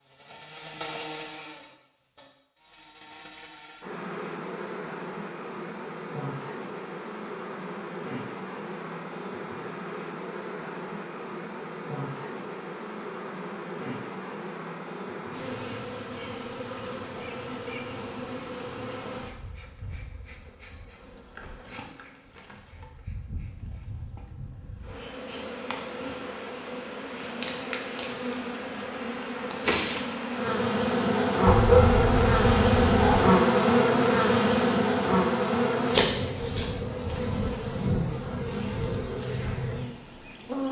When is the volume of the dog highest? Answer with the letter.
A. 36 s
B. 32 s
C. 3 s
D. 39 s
B.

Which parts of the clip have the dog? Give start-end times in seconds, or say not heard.
31.4-33.4.